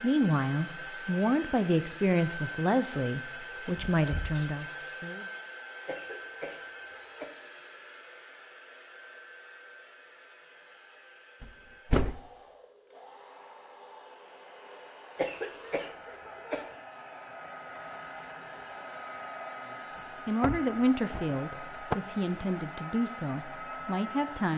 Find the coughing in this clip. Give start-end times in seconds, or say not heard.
5.8-7.3, 15.2-16.8.